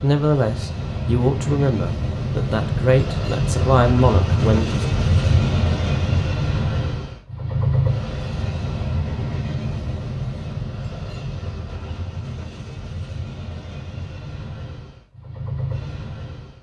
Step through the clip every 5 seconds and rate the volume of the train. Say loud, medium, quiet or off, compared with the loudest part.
loud, loud, medium, medium.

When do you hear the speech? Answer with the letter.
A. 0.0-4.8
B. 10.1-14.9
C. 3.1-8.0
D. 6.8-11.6
A.